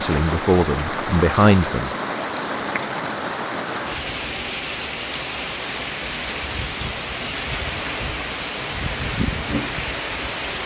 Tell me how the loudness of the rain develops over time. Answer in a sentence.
The loudness of the rain stays about the same.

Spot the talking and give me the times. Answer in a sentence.
You can hear the talking from 0.0 to 1.9 s.